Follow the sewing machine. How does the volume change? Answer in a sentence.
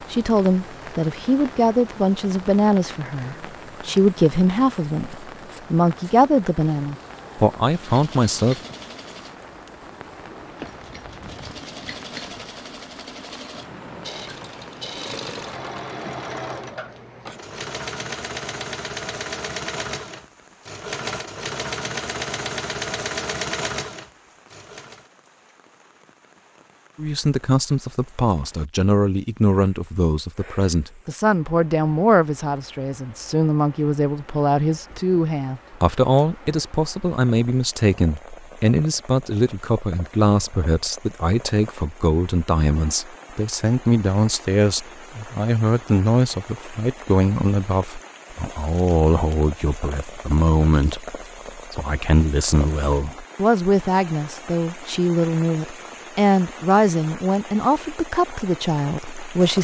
The loudness of the sewing machine goes up.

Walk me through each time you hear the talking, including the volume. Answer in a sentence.
You can hear the talking from 0.1 to 8.6 s, at a steady volume; and from 26.9 to 59.5 s, at a steady volume.